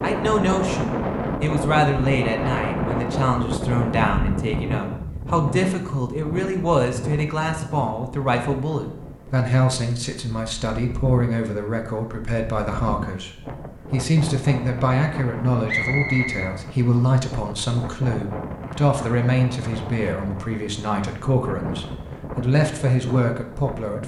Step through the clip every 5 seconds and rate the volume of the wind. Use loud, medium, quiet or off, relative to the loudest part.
loud, medium, medium, medium, medium.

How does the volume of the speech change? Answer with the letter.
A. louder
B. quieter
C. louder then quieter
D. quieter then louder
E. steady
E.